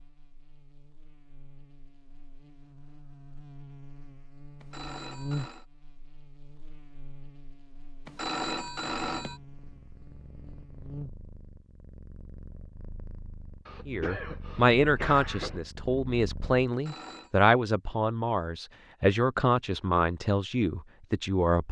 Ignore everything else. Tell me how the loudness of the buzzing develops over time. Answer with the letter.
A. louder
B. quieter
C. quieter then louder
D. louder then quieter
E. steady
D.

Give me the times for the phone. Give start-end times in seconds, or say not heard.
4.6-5.7, 8.1-9.4, 16.7-17.3.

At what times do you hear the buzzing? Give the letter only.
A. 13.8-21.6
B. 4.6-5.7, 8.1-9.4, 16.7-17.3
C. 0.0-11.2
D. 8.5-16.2
C.